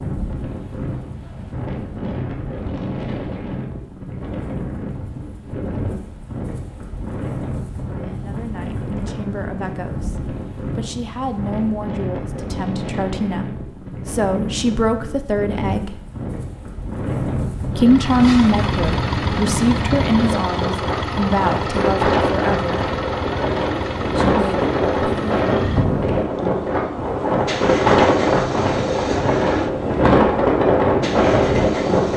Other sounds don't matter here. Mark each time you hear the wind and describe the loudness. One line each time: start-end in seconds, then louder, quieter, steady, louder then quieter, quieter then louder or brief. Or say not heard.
0.0-32.1 louder.